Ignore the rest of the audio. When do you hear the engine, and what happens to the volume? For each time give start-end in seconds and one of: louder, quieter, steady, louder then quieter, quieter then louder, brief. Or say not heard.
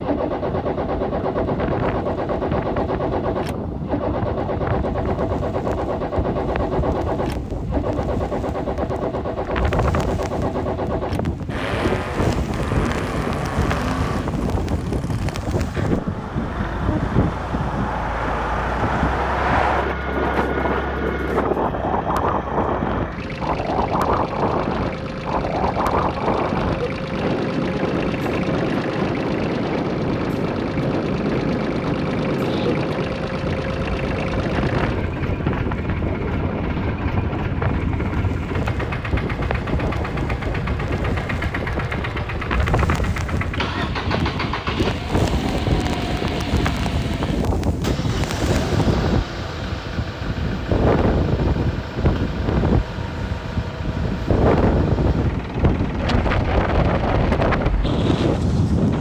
0.0-58.9 quieter.